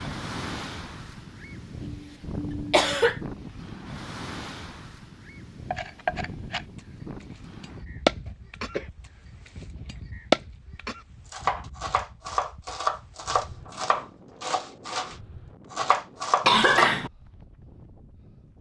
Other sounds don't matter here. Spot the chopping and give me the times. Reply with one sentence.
The chopping can be heard from 5.7 to 16.9 s.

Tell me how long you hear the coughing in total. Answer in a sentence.
The coughing can be heard for 3 seconds in total.